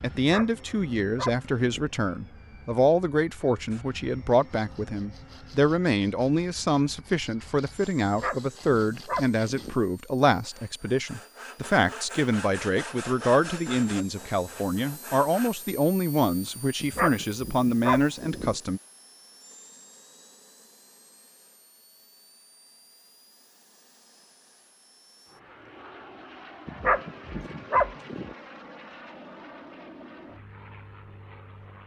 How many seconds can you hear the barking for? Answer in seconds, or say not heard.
7 s.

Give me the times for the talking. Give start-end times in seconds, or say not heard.
0.0-18.8.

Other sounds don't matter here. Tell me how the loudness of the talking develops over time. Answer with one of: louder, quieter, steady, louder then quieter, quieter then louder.
steady.